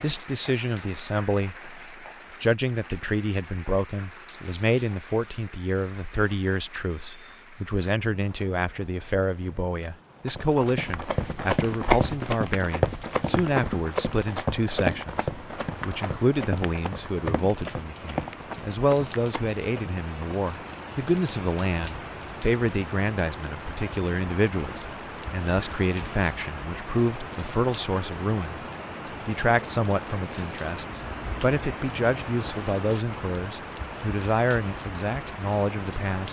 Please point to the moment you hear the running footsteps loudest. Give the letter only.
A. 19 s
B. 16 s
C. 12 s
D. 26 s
C.